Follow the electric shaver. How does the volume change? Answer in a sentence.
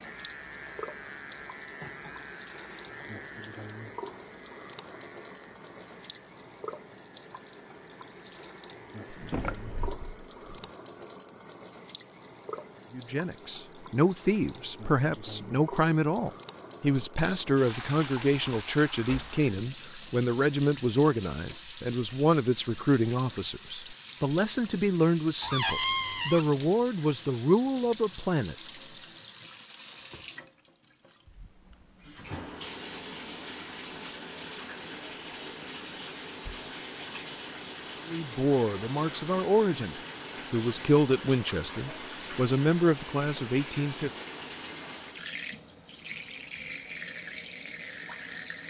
The loudness of the electric shaver goes down.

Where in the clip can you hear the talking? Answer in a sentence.
The talking can be heard from 12.9 to 28.6 s and from 38.0 to 44.1 s.